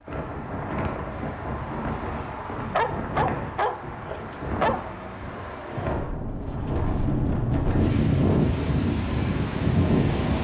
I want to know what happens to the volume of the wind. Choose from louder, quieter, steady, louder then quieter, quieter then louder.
louder.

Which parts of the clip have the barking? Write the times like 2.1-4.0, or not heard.
2.5-4.8.